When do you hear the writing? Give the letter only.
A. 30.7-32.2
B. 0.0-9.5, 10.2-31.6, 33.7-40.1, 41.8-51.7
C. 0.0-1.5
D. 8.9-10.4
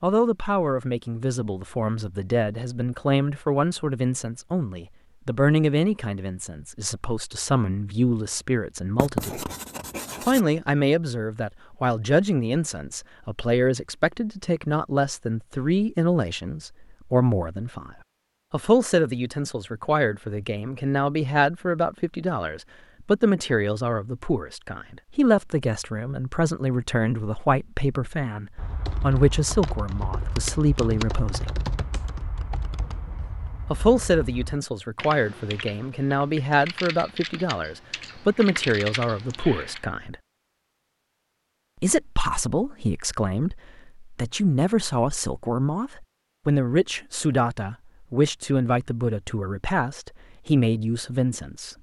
D.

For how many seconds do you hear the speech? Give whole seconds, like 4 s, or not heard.
47 s.